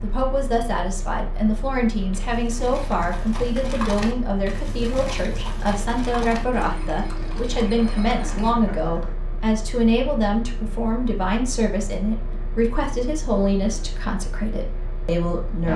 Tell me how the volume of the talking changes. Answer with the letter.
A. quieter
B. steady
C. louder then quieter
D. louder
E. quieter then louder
B.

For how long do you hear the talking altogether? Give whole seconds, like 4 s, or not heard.
16 s.